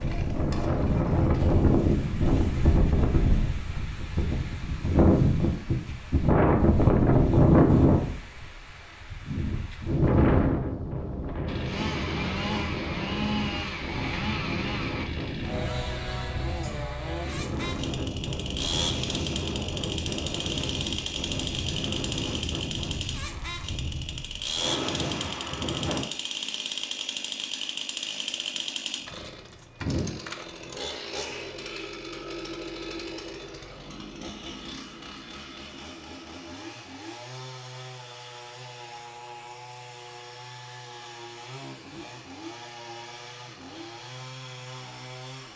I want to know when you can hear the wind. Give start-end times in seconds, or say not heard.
0.0-26.1.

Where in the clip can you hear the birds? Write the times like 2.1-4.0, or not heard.
not heard.